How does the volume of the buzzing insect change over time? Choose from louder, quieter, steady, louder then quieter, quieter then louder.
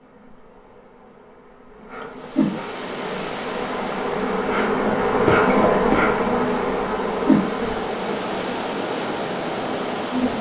louder then quieter.